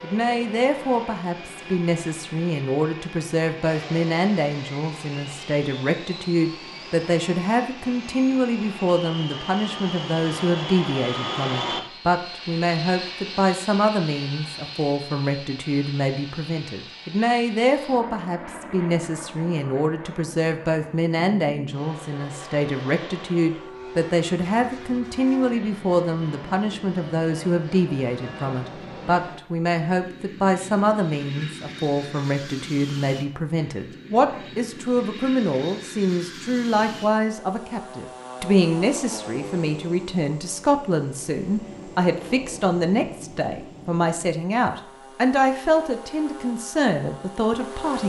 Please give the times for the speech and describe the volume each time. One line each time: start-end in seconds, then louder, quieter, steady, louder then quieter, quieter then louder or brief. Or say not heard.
0.0-48.0 steady.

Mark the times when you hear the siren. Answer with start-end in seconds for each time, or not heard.
not heard.